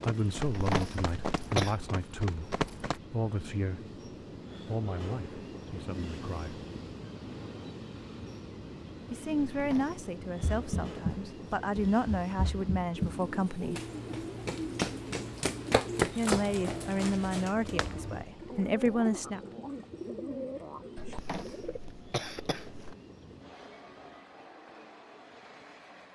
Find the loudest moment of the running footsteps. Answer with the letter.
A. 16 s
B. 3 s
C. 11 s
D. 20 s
A.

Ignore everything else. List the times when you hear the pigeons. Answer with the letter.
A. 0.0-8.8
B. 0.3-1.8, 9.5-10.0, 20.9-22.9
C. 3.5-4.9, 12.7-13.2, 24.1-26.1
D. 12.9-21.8
D.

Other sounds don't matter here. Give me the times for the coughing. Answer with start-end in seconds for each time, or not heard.
0.3-1.8, 9.5-10.0, 20.9-22.9.